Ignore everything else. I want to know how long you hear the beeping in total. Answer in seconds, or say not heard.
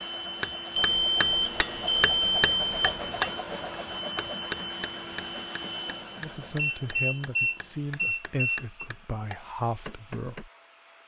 5 s.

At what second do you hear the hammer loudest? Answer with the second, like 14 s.
3 s.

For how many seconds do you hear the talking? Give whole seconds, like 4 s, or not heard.
4 s.